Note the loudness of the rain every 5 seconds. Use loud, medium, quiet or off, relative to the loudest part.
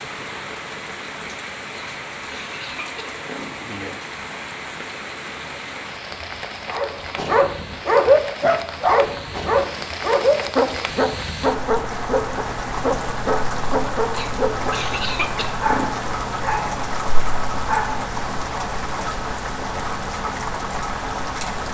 medium, medium, loud, loud, loud.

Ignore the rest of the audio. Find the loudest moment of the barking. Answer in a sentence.
The volume of the barking peaks at 8 seconds.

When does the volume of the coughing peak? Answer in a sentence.
The loudest moment of the coughing is at 15 seconds.